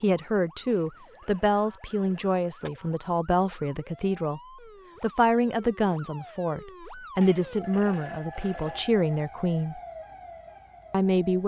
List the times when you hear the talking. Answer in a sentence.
You can hear the talking from 0.0 to 4.4 s, from 5.0 to 9.8 s and from 10.9 to 11.4 s.